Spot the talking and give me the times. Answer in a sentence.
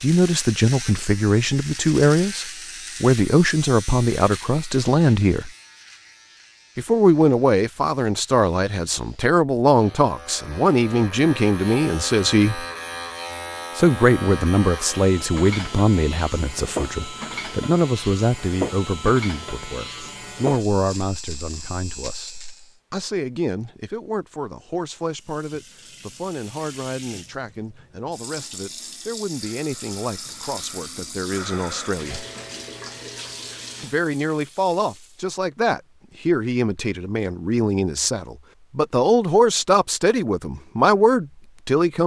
You can hear the talking from 0.0 to 5.5 s, from 6.8 to 12.7 s, from 13.8 to 32.2 s and from 33.8 to 42.0 s.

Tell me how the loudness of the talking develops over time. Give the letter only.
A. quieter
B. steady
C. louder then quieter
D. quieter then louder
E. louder
D.